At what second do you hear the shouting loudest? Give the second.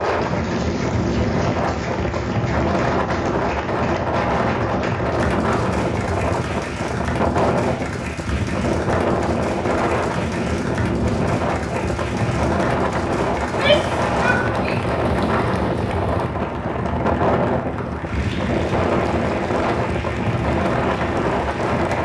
14 s.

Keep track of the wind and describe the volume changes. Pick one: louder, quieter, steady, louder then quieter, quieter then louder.
steady.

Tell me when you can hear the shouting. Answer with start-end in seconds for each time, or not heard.
13.4-14.9.